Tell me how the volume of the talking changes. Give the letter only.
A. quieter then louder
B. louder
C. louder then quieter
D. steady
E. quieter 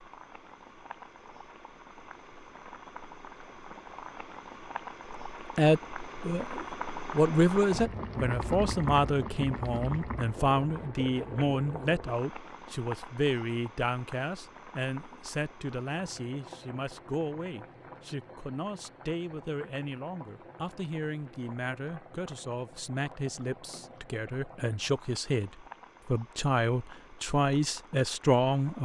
A.